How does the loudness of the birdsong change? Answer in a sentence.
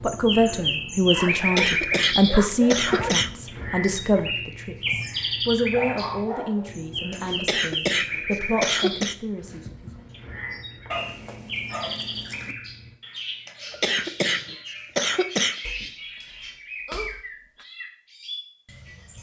The volume of the birdsong goes down.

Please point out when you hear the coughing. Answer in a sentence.
The coughing can be heard from 1.2 to 3.3 s, from 7.1 to 9.2 s and from 13.4 to 15.6 s.